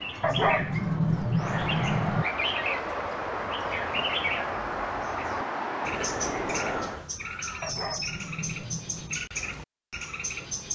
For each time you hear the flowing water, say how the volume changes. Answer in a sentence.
You can hear the flowing water from 0.0 to 7.0 s, getting louder.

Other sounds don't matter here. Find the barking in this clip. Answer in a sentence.
You can hear the barking from 0.2 to 2.2 s and from 7.6 to 9.2 s.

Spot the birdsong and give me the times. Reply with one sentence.
The birdsong can be heard from 0.0 to 10.7 s.